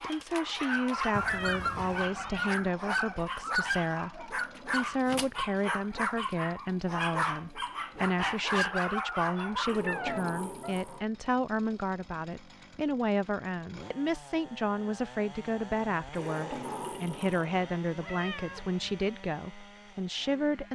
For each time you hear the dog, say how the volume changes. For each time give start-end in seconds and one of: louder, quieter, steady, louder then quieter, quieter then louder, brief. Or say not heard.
0.0-10.1 steady.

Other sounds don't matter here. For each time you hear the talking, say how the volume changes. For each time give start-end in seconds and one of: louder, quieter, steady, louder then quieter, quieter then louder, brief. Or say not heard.
0.1-20.6 steady.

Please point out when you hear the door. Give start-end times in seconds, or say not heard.
1.1-2.0, 9.7-11.1, 16.1-17.5.